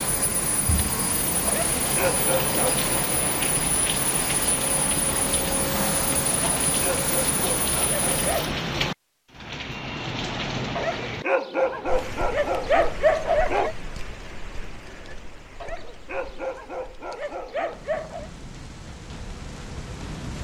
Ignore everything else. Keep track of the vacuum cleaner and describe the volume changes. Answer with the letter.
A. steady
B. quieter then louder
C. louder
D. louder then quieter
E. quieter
A.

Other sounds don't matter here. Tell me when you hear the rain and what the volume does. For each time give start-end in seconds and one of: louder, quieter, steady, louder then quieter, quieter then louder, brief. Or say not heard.
0.0-20.3 quieter.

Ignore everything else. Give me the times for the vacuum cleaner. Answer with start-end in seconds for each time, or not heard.
0.0-8.4.